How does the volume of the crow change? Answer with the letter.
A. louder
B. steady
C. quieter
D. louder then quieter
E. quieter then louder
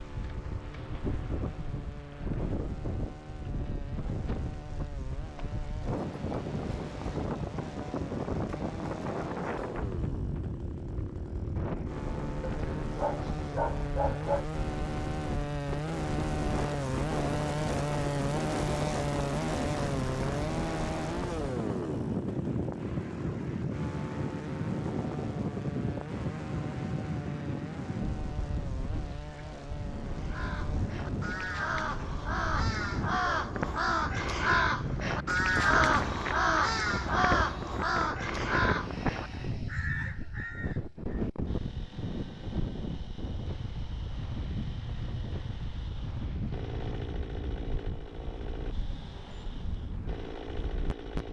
D.